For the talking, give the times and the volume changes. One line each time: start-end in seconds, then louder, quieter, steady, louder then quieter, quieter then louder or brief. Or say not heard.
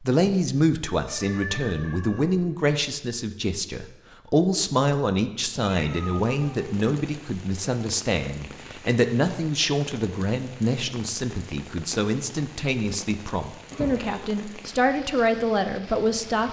0.0-16.4 steady.